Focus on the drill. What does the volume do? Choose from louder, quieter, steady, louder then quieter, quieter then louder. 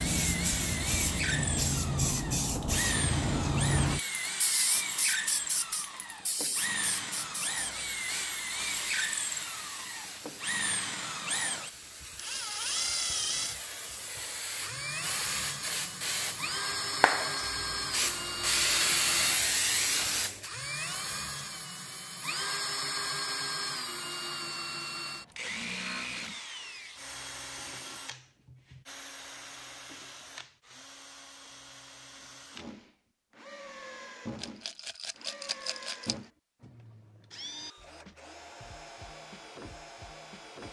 quieter.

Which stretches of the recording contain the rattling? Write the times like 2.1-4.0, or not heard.
34.4-36.1.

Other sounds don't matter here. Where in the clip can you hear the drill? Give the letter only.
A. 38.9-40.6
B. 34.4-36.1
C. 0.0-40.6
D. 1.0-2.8
C.